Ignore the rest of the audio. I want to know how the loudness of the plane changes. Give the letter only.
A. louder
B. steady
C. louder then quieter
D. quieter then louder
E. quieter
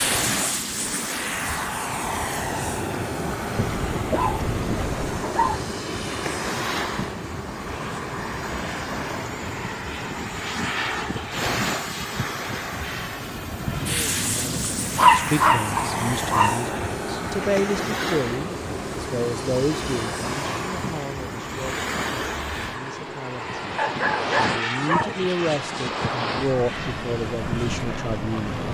B.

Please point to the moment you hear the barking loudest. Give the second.
15 s.